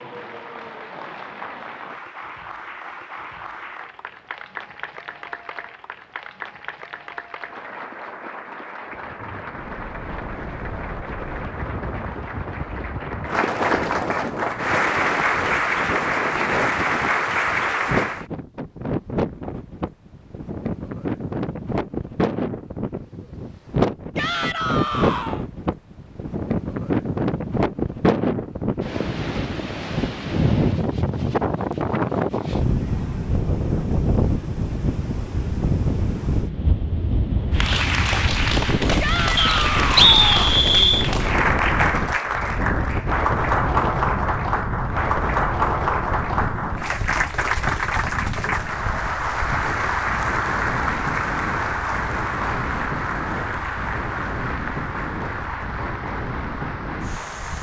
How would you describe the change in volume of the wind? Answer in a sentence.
The volume of the wind goes up, then down.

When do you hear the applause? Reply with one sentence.
You can hear the applause from 0.0 to 18.2 s and from 37.5 to 57.5 s.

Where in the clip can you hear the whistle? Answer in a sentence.
You can hear the whistle from 39.4 to 41.1 s.